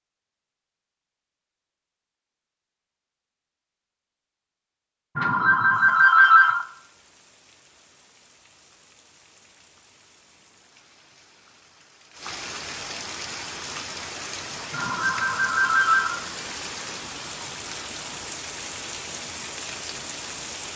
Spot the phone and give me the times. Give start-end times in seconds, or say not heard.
5.2-6.7, 14.7-16.2.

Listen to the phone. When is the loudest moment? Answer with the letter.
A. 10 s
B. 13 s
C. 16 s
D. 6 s
D.